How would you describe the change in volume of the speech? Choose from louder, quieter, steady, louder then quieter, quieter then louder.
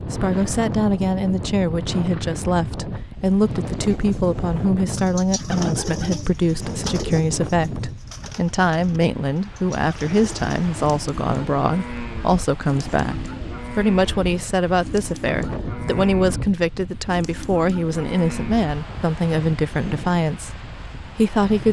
steady.